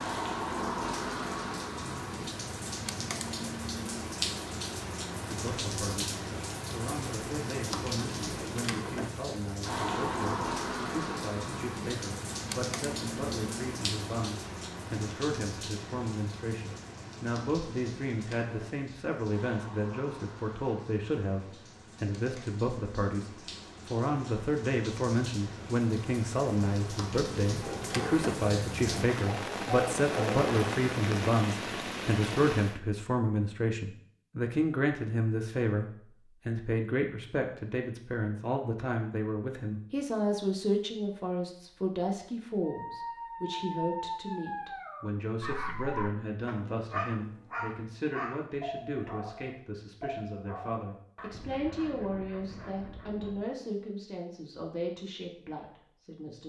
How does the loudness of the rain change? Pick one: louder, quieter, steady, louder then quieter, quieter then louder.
quieter then louder.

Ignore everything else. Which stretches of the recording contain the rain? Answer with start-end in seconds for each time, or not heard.
0.0-32.8.